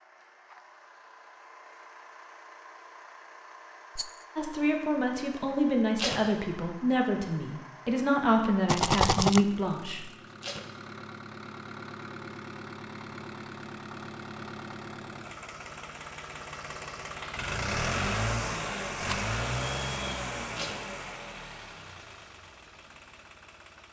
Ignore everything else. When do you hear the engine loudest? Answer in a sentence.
The volume of the engine peaks at 18 seconds.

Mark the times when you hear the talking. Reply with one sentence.
You can hear the talking from 4.3 to 10.1 s.